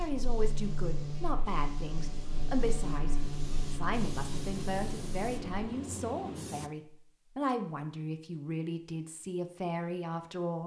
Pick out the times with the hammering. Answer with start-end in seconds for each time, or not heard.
not heard.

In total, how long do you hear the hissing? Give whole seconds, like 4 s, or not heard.
7 s.